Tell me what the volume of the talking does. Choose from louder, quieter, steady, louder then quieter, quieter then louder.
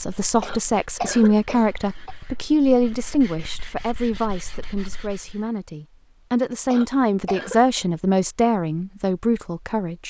quieter then louder.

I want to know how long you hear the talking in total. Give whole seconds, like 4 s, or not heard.
10 s.